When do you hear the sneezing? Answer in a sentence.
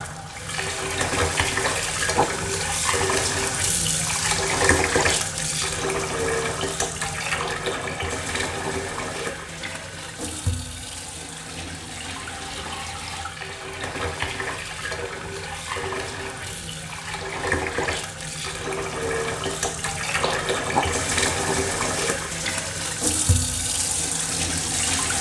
You can hear the sneezing from 1.6 to 2.3 s and from 20.2 to 20.9 s.